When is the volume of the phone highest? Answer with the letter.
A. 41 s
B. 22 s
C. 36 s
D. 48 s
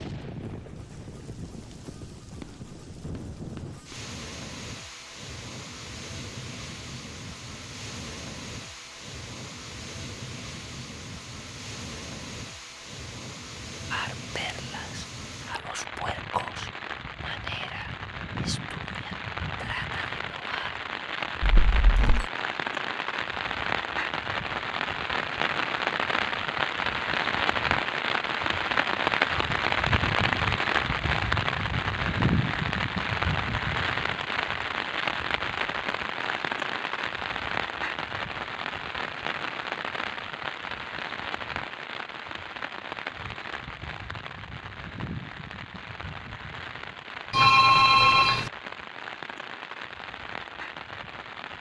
D.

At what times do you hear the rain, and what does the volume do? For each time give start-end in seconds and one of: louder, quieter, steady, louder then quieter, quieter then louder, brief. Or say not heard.
0.0-51.5 louder then quieter.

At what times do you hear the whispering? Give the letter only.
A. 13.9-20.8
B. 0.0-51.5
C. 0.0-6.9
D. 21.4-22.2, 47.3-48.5
A.